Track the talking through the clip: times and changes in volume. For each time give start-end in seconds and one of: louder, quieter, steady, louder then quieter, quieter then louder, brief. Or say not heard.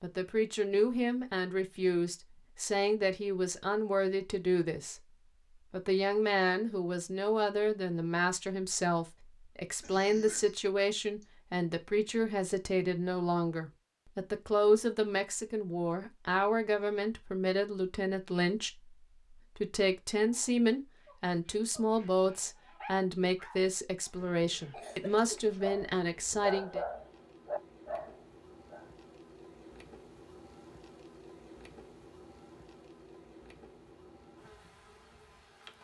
0.0-5.0 steady
5.7-26.8 steady.